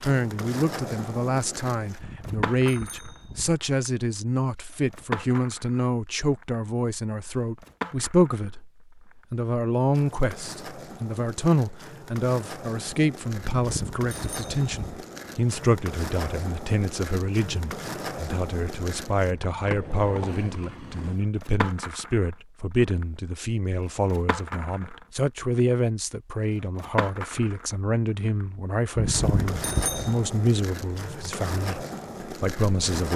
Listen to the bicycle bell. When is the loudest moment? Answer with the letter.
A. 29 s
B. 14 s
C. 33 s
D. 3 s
A.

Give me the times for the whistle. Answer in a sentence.
The whistle can't be heard in this clip.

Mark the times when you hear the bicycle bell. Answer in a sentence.
The bicycle bell can be heard from 1.9 to 3.6 s, from 13.4 to 15.0 s and from 28.9 to 30.1 s.